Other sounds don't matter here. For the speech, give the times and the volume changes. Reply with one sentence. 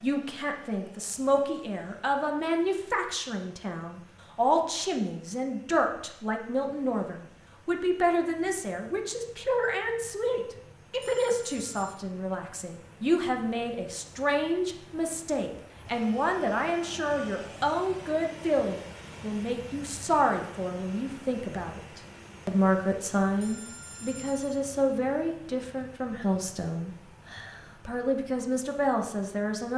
The speech can be heard from 0.0 to 29.7 s, at a steady volume.